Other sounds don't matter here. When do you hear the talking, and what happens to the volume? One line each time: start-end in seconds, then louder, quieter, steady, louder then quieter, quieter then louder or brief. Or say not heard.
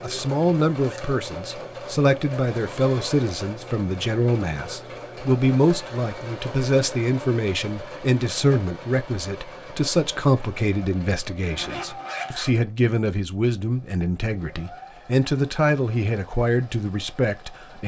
0.0-17.8 steady.